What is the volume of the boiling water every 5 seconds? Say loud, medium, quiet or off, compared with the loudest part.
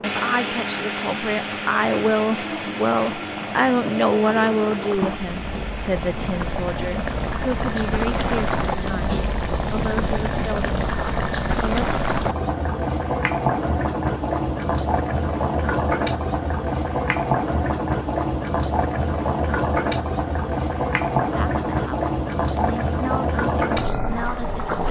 medium, loud, loud, loud, loud.